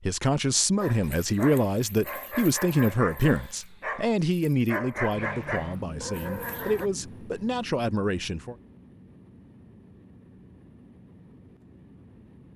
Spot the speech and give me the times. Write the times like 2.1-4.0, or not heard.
0.0-8.6.